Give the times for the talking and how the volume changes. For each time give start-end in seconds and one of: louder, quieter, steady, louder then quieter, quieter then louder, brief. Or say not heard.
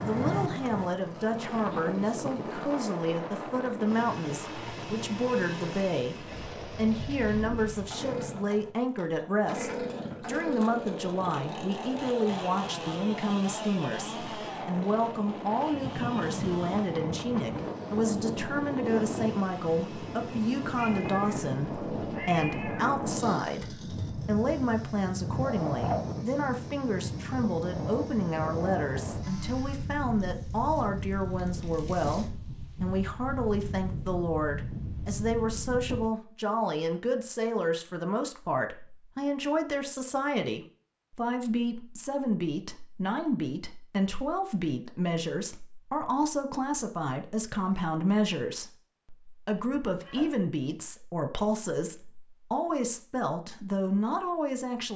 0.0-54.9 steady.